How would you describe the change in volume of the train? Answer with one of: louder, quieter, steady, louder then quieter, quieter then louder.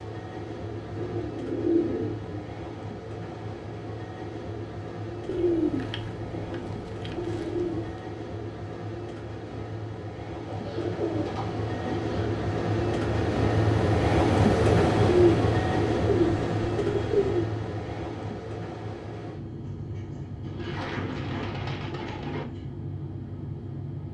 louder then quieter.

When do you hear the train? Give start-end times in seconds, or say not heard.
0.0-24.0.